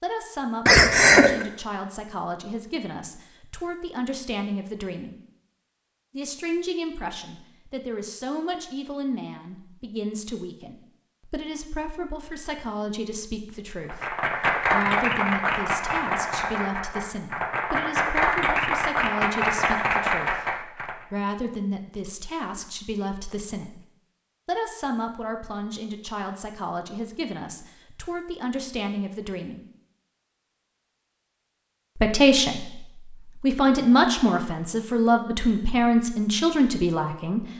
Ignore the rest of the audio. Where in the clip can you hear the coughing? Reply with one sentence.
You can hear the coughing from 0.7 to 1.4 s.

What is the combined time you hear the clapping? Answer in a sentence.
The clapping can be heard for 7 seconds in total.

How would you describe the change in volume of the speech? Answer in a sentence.
The volume of the speech goes up.